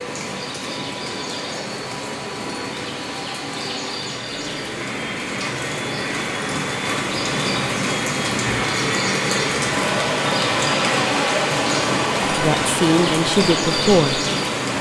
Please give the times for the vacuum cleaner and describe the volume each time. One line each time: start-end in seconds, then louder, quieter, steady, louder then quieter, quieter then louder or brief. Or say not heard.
0.0-14.7 louder.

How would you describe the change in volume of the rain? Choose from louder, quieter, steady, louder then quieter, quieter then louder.
louder.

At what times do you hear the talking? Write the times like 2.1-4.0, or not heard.
12.2-14.2.